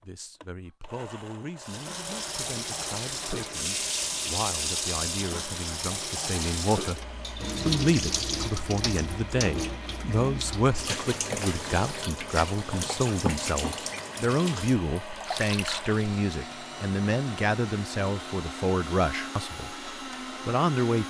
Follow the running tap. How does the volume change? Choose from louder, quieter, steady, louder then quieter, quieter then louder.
steady.